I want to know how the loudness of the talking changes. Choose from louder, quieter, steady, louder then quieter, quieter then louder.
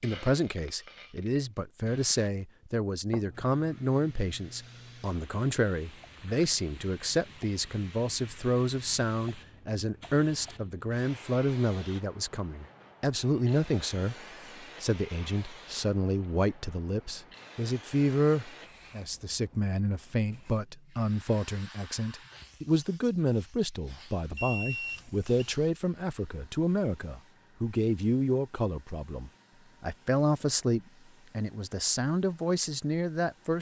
steady.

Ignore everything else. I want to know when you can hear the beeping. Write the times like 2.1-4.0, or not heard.
24.4-25.4.